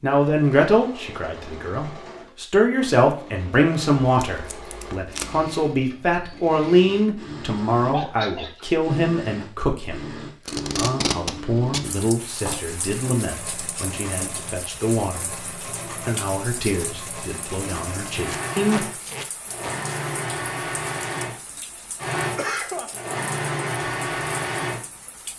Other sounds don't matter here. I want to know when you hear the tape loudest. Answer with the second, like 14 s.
11 s.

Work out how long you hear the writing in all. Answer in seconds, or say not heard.
not heard.